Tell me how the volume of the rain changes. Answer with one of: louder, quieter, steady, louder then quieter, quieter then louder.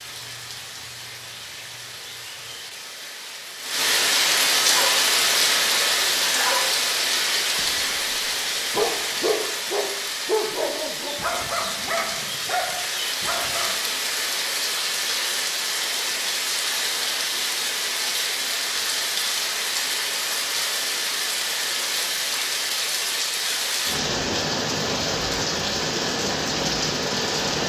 steady.